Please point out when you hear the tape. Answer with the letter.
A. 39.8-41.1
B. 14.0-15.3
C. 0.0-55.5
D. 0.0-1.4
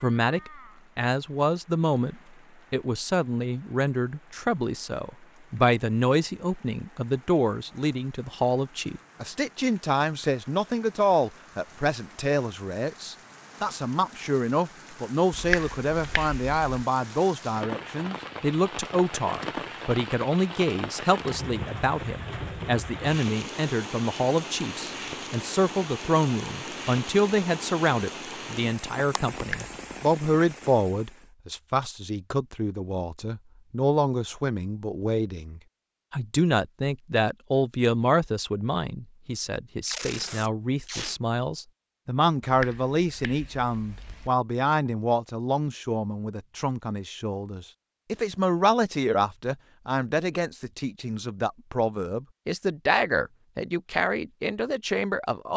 A.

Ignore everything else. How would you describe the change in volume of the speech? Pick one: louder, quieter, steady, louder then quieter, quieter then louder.
steady.